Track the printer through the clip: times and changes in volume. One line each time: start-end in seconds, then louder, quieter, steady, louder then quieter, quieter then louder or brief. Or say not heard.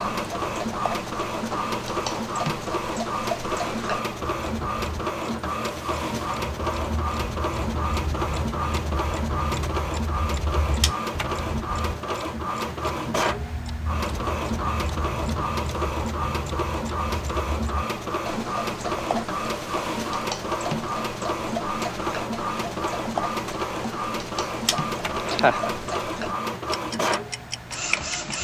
0.0-28.3 steady.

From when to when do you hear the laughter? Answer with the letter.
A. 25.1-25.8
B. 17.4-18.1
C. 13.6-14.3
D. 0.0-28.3
A.